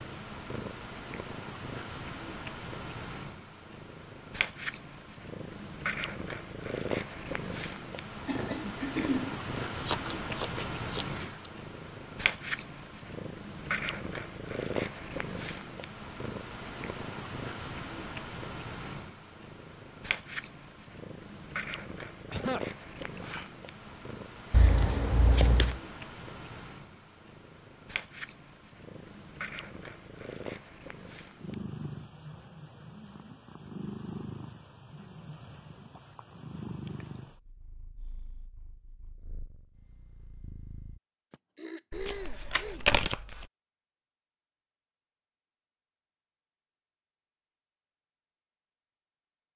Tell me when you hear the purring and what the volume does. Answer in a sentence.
You can hear the purring from 0.0 to 41.0 s, getting quieter.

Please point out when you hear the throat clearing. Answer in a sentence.
You can hear the throat clearing from 8.2 to 9.4 s, from 22.3 to 23.5 s and from 41.3 to 42.9 s.